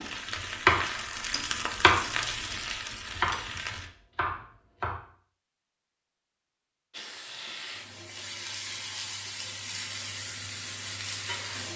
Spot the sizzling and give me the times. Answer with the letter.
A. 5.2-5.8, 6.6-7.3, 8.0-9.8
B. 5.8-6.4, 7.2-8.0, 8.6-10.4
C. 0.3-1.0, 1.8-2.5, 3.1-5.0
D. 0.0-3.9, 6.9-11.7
D.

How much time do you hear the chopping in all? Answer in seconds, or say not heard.
3 s.